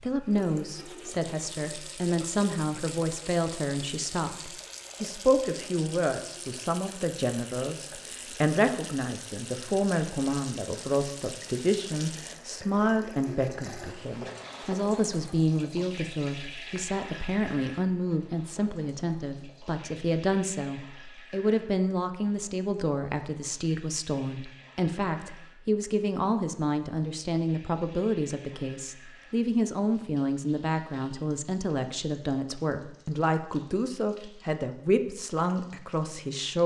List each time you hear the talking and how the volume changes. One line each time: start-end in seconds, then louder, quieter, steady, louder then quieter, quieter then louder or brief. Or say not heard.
0.0-36.6 steady.